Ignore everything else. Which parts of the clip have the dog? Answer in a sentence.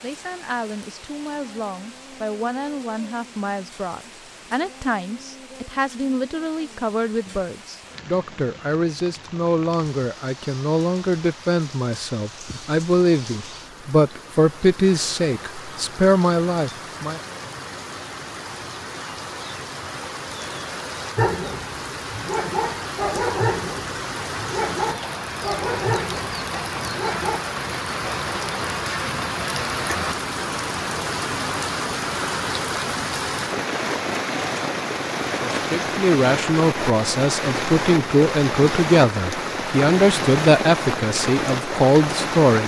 The dog can be heard from 21.1 to 27.4 s.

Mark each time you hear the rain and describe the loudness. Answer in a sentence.
The rain can be heard from 0.0 to 42.6 s, getting louder.